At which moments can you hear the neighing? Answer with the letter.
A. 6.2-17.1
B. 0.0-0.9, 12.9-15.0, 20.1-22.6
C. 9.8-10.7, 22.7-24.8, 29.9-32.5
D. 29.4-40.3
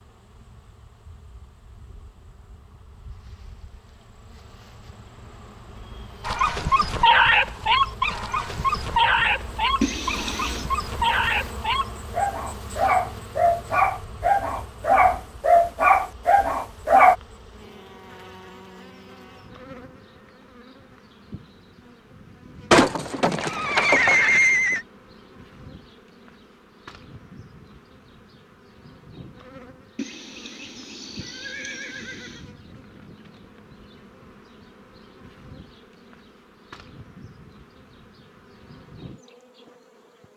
C.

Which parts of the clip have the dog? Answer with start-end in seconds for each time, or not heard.
6.2-17.1.